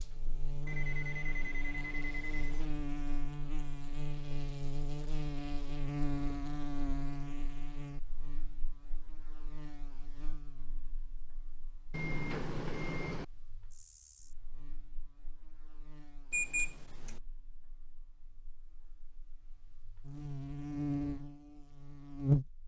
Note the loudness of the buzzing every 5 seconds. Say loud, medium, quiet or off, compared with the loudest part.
medium, medium, quiet, quiet, loud.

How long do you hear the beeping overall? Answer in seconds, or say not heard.
4 s.